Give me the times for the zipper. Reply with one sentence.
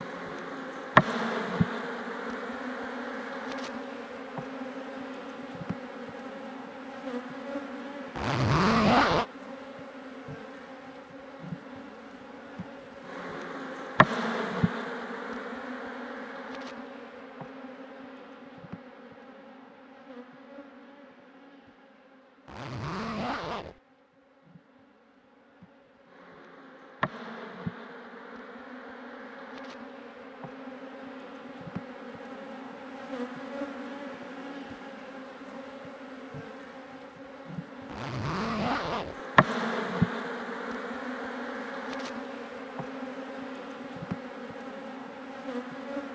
You can hear the zipper from 8.2 to 9.2 s, from 22.4 to 23.8 s and from 37.9 to 39.2 s.